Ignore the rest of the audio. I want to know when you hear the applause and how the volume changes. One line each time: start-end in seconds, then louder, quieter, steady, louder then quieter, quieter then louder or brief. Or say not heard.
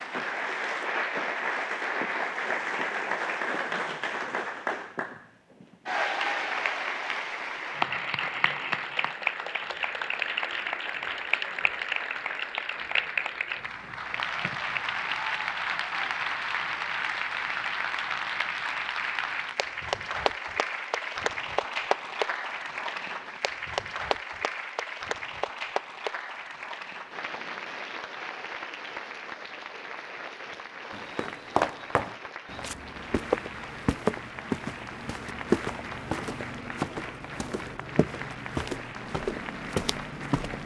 0.0-40.6 quieter.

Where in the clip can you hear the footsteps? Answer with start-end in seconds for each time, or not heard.
30.9-40.6.